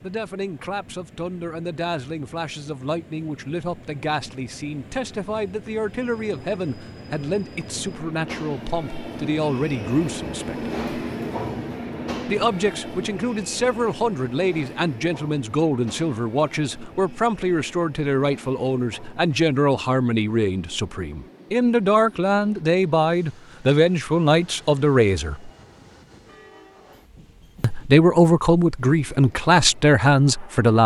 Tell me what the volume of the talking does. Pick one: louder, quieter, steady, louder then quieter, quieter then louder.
louder.